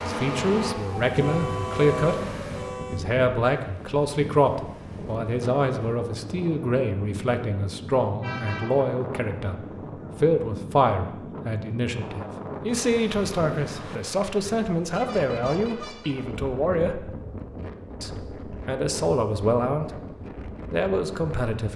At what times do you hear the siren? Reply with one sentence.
You can hear the siren from 0.0 to 2.8 s.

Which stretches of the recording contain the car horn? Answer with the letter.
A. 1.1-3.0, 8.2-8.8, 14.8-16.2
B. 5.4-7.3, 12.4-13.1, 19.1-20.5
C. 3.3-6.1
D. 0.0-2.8
A.